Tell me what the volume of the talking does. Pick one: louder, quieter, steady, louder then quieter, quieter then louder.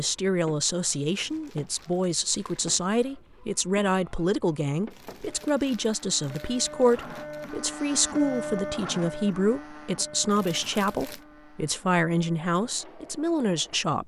steady.